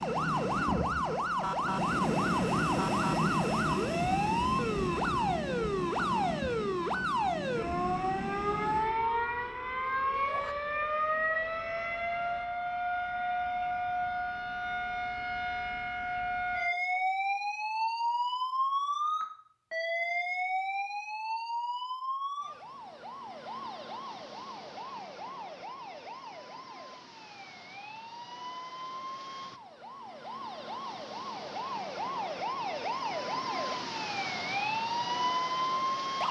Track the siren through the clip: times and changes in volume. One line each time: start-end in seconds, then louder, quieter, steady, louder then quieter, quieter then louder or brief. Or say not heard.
0.0-36.2 quieter then louder.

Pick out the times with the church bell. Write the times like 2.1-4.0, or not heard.
not heard.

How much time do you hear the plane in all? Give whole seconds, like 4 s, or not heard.
9 s.